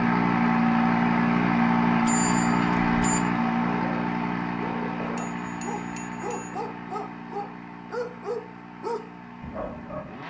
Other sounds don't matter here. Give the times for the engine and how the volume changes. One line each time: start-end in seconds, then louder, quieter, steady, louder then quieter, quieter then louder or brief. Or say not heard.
0.0-10.2 quieter.